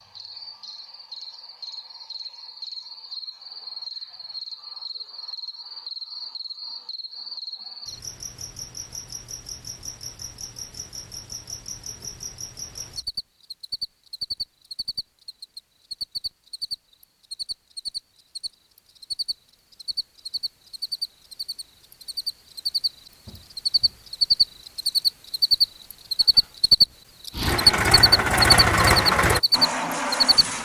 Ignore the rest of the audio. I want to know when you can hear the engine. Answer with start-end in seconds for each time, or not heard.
27.4-30.6.